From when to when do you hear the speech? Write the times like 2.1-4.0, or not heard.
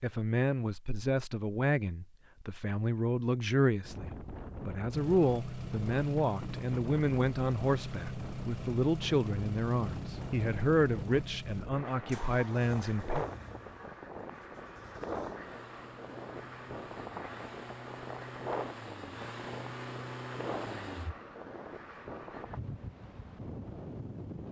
0.0-13.2.